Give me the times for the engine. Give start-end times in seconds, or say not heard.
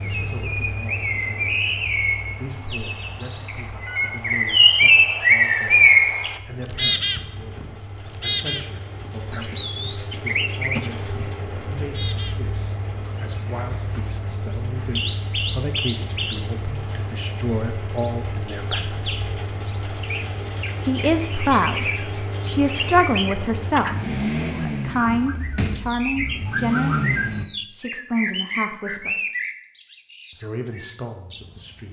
0.0-27.4.